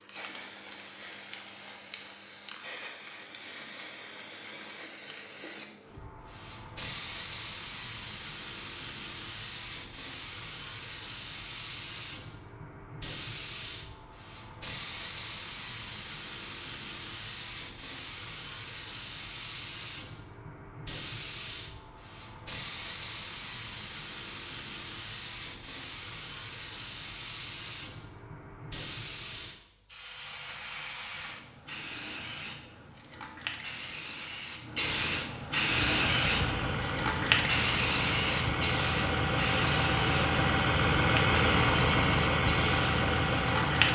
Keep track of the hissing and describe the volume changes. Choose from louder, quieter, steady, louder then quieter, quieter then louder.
louder.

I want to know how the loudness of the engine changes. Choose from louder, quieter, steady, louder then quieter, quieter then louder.
louder.